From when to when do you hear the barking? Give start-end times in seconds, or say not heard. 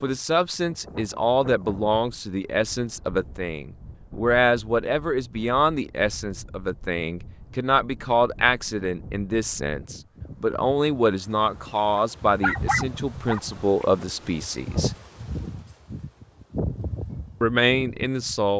11.9-13.4.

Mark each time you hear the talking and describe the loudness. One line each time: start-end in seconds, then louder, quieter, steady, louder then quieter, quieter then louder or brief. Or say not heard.
0.0-14.9 steady
17.4-18.5 brief.